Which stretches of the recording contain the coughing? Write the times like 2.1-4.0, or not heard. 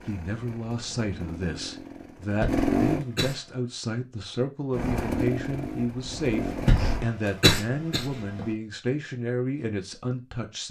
2.4-3.4, 6.7-8.4.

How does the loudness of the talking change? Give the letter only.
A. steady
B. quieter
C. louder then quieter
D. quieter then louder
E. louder
A.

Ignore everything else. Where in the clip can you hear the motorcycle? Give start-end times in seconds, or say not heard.
0.0-3.0, 4.7-7.0.